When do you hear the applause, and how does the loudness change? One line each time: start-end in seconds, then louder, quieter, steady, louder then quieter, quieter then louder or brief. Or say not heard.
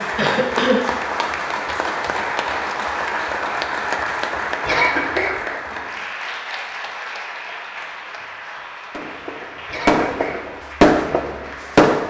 0.0-11.9 quieter.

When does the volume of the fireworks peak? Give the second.
11 s.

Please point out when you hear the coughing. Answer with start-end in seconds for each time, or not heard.
0.1-0.8, 4.7-5.4, 9.7-10.4.